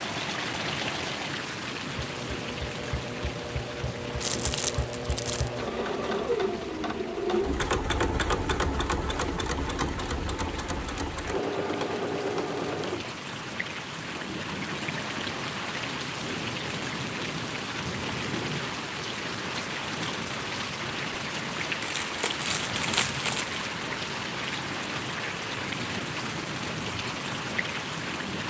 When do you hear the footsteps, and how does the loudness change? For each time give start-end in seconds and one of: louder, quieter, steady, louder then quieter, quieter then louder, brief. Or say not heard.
not heard.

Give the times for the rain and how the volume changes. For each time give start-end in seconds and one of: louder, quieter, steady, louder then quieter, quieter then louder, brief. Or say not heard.
0.0-28.4 quieter then louder.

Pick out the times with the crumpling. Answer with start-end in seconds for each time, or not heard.
4.2-5.5, 21.8-23.6.